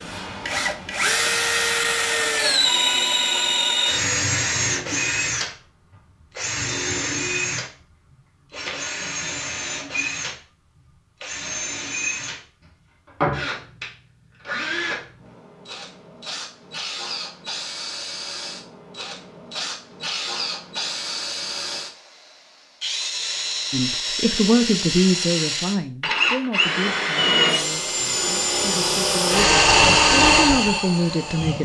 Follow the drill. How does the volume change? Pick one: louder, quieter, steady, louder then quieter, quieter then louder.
quieter then louder.